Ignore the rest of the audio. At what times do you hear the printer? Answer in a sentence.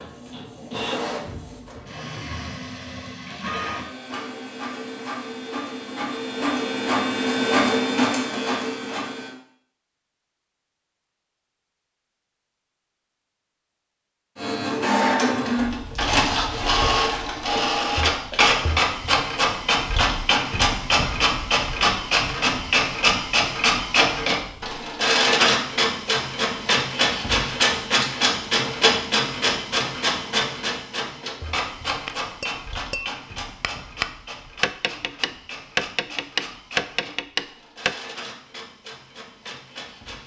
You can hear the printer from 0.0 to 9.3 s and from 14.3 to 40.2 s.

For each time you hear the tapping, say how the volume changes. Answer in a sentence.
The tapping can be heard from 32.0 to 38.0 s, getting louder.